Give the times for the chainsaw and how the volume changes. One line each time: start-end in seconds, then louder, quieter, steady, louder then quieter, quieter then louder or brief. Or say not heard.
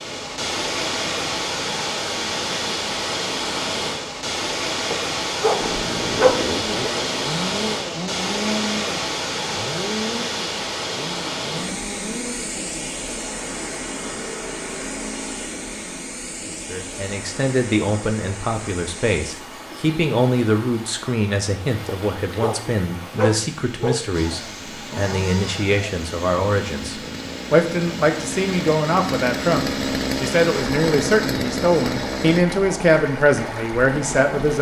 5.5-16.0 quieter
24.1-32.5 louder.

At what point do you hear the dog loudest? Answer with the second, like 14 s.
6 s.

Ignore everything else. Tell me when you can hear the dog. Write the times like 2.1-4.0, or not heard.
4.9-6.9, 21.9-24.0.